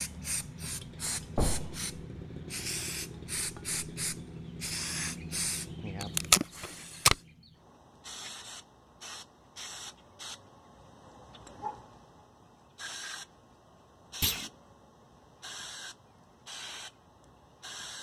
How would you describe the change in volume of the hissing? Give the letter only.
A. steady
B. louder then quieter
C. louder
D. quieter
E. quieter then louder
D.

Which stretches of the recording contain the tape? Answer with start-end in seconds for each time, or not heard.
6.0-7.2.